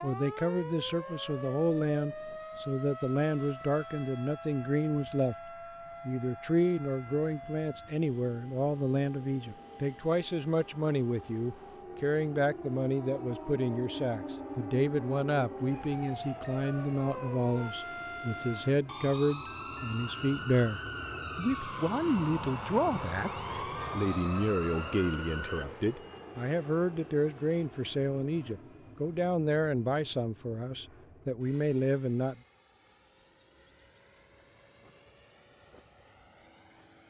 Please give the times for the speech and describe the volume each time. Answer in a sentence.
You can hear the speech from 0.0 to 5.3 s, at a steady volume; and from 6.0 to 32.4 s, at a steady volume.